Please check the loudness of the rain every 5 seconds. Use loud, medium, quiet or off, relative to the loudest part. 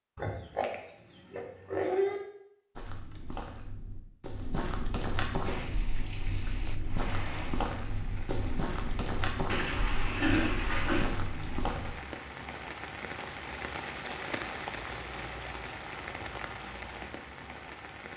off, medium, loud, loud.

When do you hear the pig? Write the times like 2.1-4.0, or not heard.
0.1-2.2, 9.4-11.1.